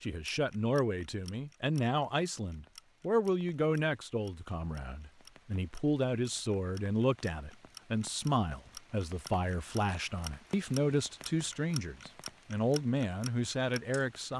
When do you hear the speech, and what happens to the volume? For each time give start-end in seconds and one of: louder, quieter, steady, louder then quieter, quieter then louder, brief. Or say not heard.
0.0-14.3 steady.